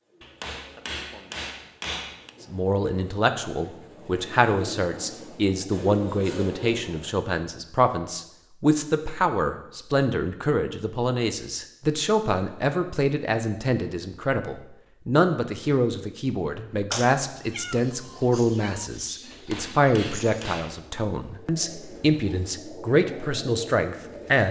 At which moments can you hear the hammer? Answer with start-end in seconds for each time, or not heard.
0.2-2.3, 19.3-20.8.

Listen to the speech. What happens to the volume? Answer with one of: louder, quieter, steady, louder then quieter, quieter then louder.
steady.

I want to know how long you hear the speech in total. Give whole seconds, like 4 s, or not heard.
22 s.